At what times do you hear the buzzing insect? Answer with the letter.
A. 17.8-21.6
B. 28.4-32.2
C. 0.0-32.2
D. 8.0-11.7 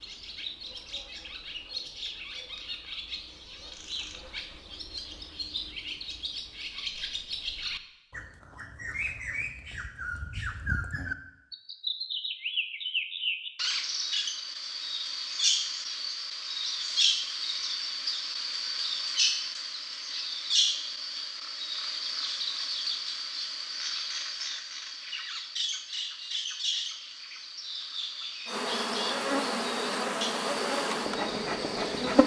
B.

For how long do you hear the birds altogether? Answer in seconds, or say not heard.
32 s.